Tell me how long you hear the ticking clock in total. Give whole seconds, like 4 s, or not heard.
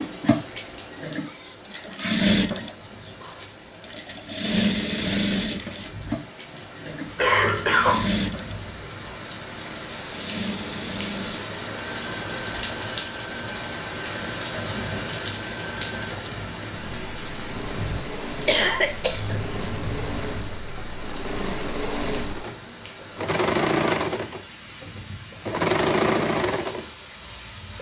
not heard.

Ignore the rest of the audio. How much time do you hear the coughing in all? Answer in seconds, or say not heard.
2 s.